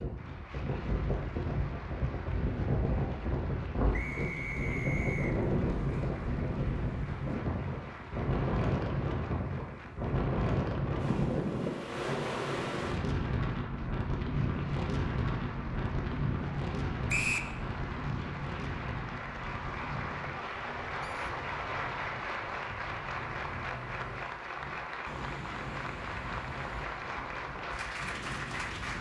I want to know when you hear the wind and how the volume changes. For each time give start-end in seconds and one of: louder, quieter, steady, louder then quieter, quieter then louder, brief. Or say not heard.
0.0-28.9 quieter.